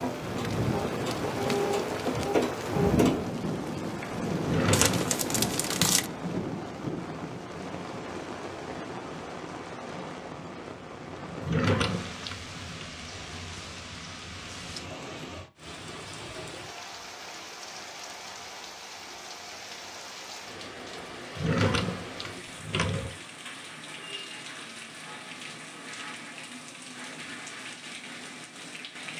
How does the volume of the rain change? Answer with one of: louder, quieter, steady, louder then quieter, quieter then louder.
quieter.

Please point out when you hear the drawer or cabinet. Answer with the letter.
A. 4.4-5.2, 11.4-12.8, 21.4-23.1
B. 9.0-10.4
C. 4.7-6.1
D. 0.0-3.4
A.